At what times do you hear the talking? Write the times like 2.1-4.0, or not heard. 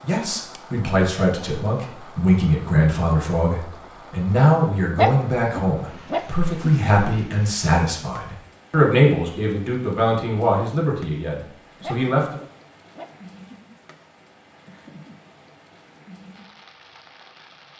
0.0-12.4.